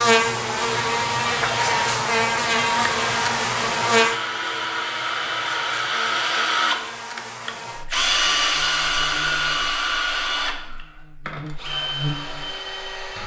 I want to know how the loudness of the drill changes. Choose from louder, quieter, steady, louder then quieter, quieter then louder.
louder then quieter.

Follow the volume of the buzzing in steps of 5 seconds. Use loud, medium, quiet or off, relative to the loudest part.
loud, quiet, quiet.